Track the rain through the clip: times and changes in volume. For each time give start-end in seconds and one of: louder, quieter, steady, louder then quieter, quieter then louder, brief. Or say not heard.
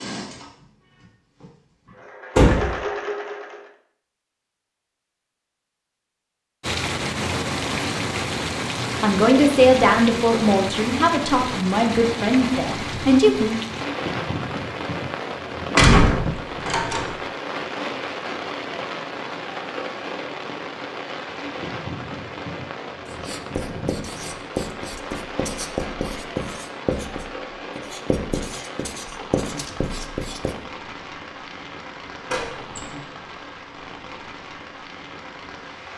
6.6-35.9 quieter.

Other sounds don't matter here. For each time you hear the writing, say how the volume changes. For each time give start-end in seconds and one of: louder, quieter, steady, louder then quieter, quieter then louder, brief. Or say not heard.
23.1-30.6 steady.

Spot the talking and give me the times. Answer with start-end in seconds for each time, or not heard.
8.8-13.6.